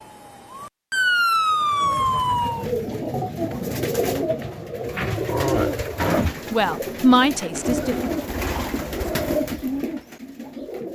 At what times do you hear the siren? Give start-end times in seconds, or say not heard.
0.0-2.6.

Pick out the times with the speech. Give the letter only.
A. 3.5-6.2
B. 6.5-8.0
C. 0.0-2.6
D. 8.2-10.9
B.